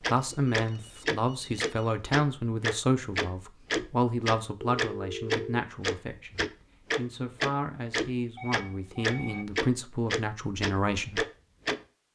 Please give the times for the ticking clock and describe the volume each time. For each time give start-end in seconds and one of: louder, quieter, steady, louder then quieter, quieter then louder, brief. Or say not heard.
0.0-11.8 steady.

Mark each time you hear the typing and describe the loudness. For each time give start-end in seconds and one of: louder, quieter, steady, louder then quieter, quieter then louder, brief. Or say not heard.
not heard.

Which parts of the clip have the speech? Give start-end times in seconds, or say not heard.
0.1-11.2.